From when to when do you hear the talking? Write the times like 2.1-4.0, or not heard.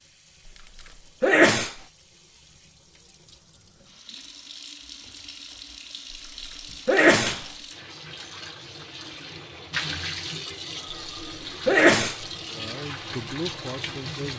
12.5-14.3.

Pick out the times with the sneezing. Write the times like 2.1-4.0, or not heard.
1.2-1.8, 6.8-7.4, 11.7-12.2.